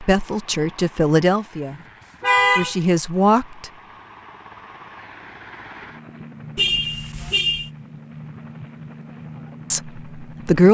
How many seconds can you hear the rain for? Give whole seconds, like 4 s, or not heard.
not heard.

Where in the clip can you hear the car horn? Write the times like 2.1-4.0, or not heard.
2.2-2.8, 6.5-7.7.